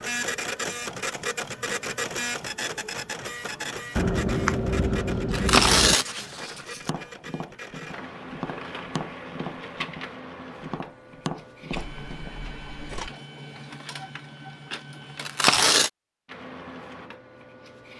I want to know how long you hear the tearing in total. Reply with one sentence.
You can hear the tearing for 2 seconds altogether.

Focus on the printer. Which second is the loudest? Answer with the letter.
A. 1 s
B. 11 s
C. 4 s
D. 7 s
A.